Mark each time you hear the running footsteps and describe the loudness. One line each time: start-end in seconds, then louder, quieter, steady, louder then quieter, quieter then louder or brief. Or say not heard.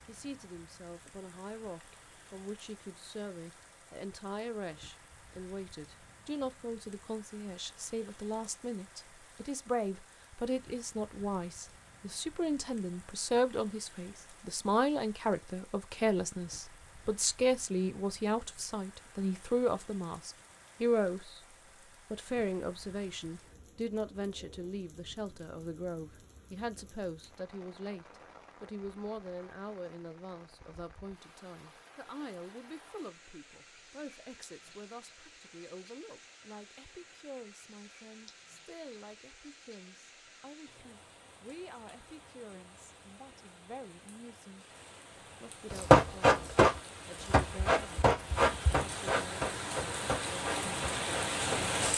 45.7-51.8 quieter.